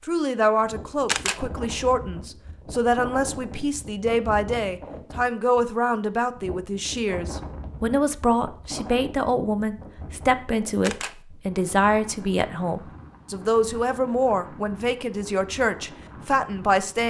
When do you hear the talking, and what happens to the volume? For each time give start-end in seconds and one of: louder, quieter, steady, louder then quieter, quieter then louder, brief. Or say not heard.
0.1-17.0 steady.